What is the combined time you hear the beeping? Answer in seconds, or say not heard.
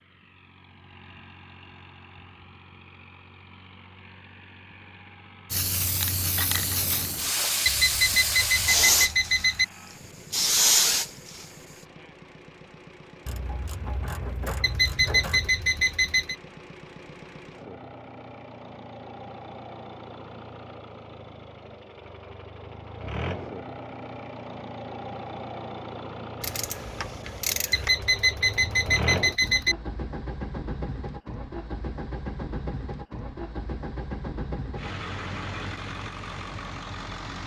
6 s.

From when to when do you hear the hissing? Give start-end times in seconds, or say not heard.
5.5-11.4.